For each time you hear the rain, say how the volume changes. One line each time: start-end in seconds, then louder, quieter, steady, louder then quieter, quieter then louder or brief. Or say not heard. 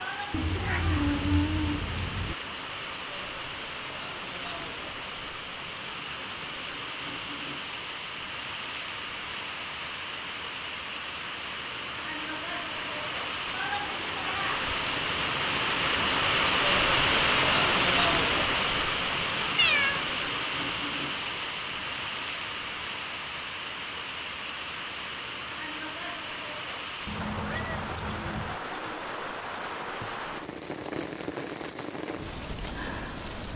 0.0-33.5 louder then quieter.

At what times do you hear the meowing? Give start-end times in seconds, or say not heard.
0.3-2.4, 19.6-20.1, 27.1-28.6.